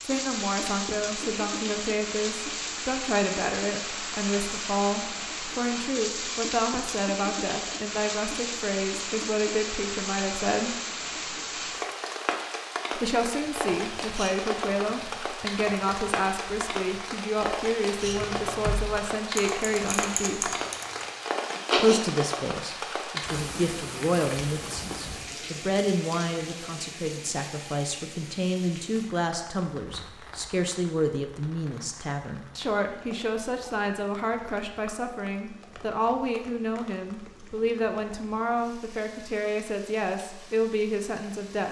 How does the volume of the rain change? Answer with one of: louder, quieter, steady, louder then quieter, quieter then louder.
quieter.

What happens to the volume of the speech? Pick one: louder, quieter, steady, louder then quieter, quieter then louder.
steady.